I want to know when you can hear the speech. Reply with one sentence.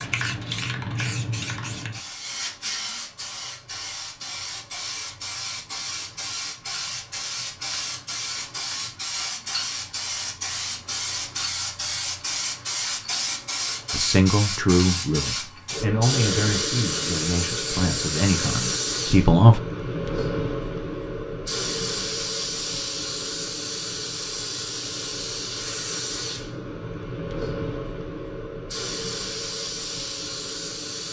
The speech can be heard from 13.9 to 19.6 s.